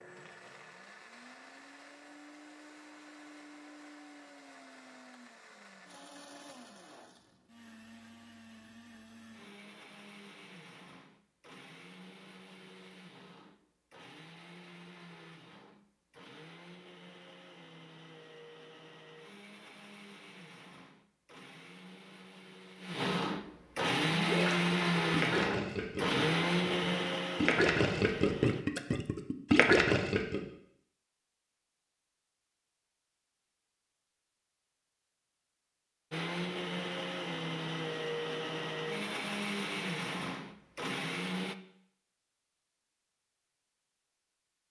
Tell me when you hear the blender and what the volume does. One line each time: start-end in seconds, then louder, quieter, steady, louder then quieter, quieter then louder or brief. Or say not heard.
0.0-28.6 louder
36.1-41.5 steady.